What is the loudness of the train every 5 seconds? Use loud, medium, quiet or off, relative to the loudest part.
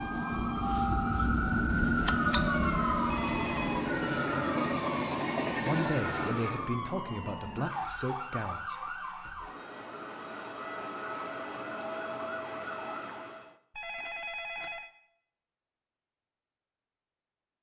loud, loud, off, off.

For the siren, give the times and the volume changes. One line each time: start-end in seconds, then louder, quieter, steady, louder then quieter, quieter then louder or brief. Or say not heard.
0.0-13.6 quieter.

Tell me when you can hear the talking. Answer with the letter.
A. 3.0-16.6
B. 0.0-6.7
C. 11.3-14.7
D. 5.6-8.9
D.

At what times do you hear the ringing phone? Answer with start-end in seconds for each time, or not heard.
3.0-3.9, 13.7-14.9.